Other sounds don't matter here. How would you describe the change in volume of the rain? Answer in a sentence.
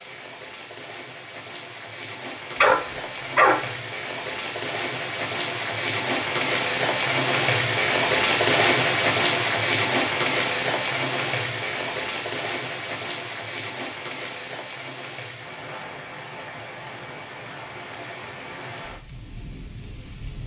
The loudness of the rain goes up, then down.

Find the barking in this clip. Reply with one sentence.
The barking can be heard from 2.6 to 3.7 s.